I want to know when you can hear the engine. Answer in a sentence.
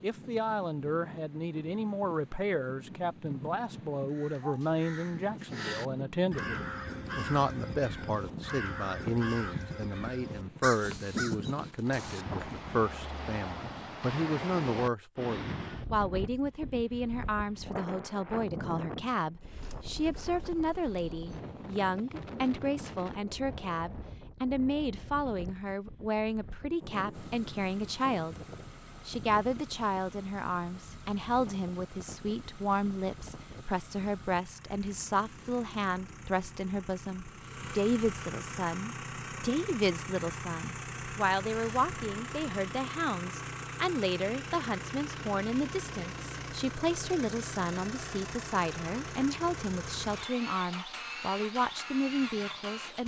The engine can be heard from 27.1 to 53.0 s.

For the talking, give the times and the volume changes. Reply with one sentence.
The talking can be heard from 0.0 to 28.4 s, at a steady volume; and from 29.1 to 53.0 s, at a steady volume.